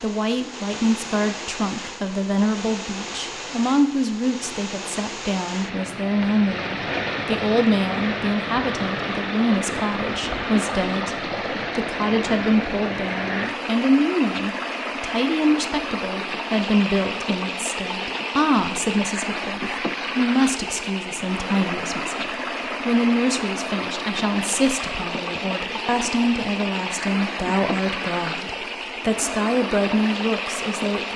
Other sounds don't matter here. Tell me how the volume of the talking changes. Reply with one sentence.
The loudness of the talking stays about the same.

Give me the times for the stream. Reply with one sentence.
The stream can be heard from 0.0 to 31.1 s.